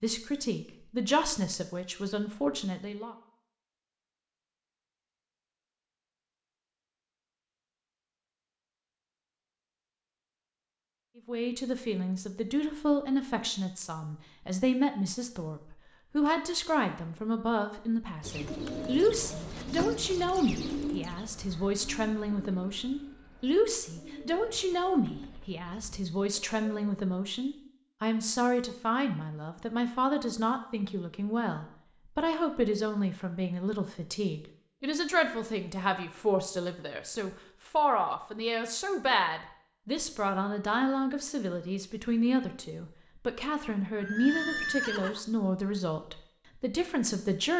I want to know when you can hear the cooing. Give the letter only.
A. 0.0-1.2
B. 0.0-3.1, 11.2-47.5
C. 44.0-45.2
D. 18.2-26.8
D.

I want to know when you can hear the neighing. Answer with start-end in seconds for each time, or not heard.
44.0-45.2.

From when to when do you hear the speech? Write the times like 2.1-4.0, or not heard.
0.0-3.1, 11.2-47.5.